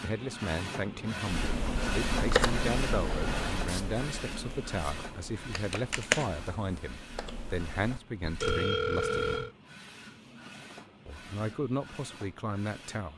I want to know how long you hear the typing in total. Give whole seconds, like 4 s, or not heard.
7 s.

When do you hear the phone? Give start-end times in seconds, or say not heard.
8.4-9.6.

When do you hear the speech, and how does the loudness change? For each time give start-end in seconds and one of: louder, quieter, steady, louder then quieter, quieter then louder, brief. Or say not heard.
0.0-9.3 steady
11.1-13.1 brief.